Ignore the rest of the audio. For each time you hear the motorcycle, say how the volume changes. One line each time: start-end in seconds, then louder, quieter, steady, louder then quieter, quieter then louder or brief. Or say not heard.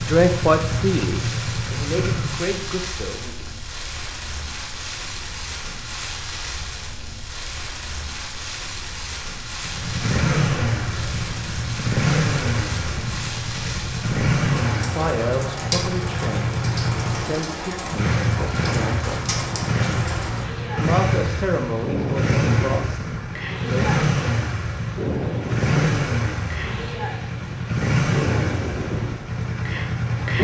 0.0-2.5 brief
9.6-30.3 steady.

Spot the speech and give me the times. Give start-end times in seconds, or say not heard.
0.0-3.5, 14.9-19.4, 20.8-23.9.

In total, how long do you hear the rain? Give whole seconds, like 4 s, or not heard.
30 s.